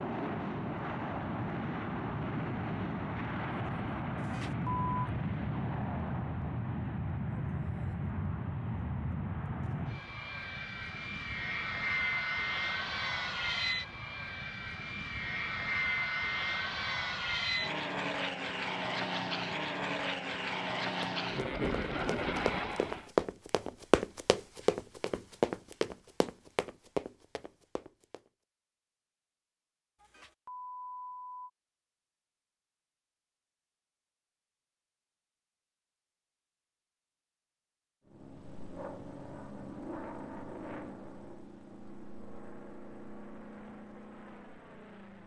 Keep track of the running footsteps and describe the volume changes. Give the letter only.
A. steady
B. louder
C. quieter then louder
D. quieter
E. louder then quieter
E.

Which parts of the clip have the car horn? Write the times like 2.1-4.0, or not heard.
not heard.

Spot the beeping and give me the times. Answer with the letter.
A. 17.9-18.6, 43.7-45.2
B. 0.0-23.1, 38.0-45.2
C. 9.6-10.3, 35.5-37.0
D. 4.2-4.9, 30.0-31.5
D.